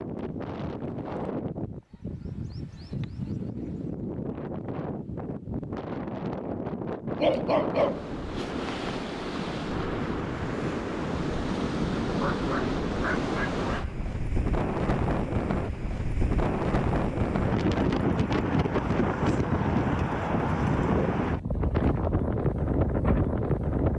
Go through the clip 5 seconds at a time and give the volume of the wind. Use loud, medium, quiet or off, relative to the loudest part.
medium, medium, loud, loud, loud.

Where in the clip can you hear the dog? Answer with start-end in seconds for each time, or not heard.
7.2-9.0, 12.1-14.1.